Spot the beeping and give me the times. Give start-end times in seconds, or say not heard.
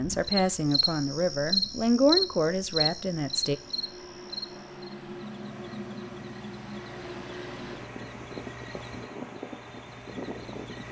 not heard.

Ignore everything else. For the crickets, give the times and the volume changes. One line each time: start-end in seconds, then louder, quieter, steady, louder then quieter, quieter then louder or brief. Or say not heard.
0.0-10.8 quieter.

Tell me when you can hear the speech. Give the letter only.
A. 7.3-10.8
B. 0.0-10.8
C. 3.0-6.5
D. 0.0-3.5
D.